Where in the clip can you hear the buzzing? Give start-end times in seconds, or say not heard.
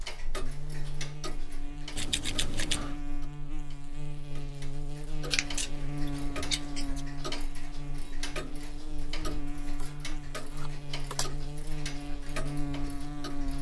0.0-13.5.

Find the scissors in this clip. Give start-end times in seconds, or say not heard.
1.9-3.0, 5.2-7.0, 9.6-11.3.